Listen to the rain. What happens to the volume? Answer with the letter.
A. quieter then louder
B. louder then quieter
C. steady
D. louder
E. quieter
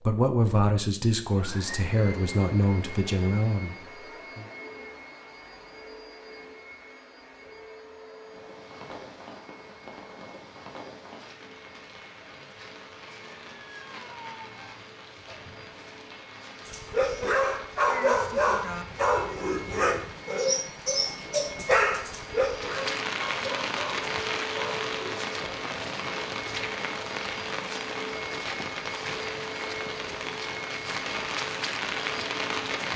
D.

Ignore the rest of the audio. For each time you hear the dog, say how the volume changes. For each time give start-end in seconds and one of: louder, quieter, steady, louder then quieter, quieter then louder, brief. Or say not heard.
16.6-25.3 quieter.